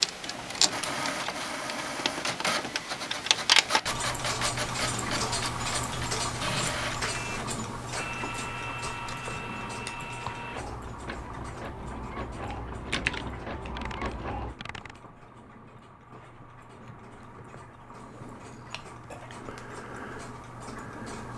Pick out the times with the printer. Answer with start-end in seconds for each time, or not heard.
0.0-14.6.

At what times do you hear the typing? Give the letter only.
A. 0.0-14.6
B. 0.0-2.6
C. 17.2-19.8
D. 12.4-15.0
D.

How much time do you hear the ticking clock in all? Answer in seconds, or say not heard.
21 s.